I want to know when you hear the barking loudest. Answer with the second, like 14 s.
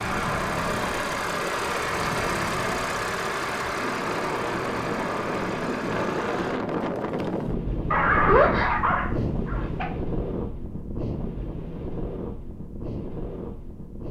8 s.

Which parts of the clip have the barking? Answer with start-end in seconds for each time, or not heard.
7.9-9.8.